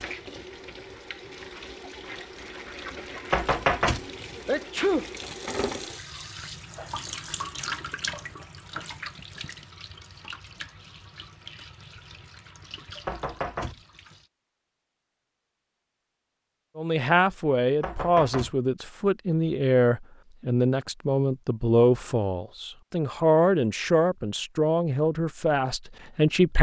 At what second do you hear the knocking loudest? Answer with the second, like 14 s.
4 s.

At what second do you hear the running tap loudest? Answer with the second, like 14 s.
8 s.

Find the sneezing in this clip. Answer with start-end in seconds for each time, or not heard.
4.5-5.0.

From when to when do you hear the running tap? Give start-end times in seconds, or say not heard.
0.0-14.3.